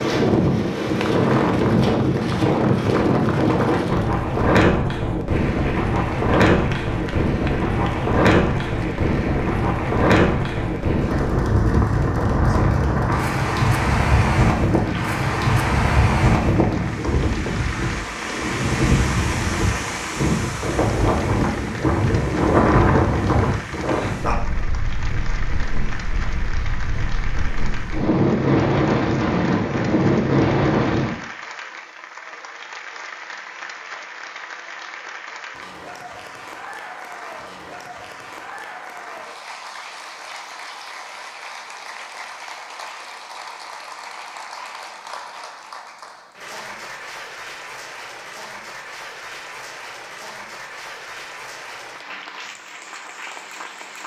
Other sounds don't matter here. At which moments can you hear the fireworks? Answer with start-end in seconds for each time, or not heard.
not heard.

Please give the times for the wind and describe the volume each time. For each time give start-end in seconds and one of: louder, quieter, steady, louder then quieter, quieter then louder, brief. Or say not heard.
0.0-31.1 steady.